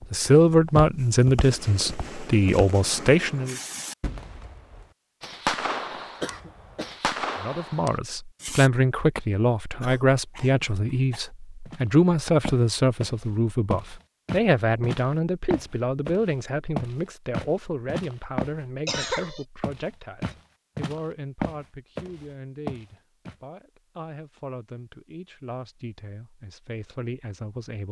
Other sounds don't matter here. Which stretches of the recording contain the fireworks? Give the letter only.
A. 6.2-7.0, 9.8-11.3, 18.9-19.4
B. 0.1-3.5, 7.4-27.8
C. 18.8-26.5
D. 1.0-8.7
D.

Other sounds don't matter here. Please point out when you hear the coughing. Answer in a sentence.
The coughing can be heard from 6.2 to 7.0 s, from 9.8 to 11.3 s and from 18.9 to 19.4 s.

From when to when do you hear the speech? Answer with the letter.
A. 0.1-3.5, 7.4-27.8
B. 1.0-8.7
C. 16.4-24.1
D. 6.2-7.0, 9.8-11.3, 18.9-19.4
A.